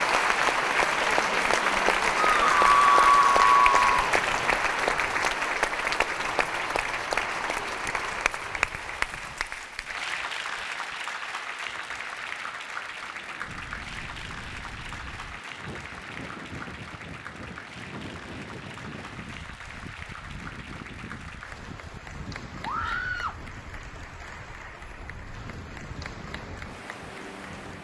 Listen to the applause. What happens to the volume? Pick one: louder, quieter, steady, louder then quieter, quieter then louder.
quieter.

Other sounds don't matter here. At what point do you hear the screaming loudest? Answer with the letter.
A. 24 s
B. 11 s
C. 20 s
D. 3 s
D.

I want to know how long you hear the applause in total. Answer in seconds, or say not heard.
28 s.